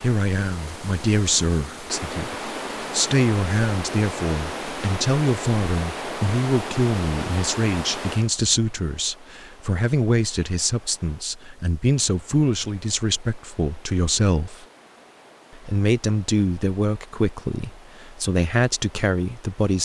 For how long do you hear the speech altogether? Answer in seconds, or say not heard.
19 s.